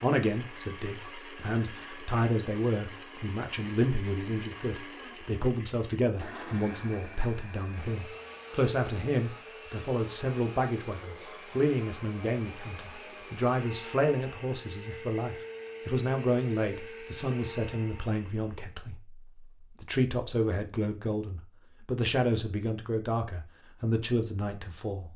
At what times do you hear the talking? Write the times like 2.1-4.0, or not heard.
0.0-19.2, 19.8-25.1.